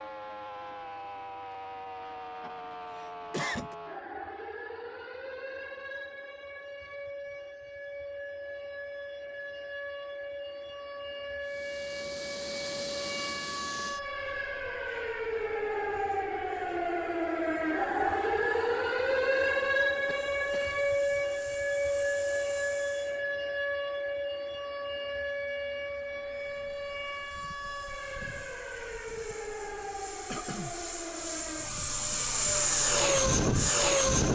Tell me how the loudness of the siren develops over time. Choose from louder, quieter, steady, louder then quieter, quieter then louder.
louder then quieter.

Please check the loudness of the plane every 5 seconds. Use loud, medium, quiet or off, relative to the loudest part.
off, off, quiet, quiet, quiet, quiet, loud.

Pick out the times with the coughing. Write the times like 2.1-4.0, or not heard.
2.4-3.8, 20.1-20.8, 30.2-30.8.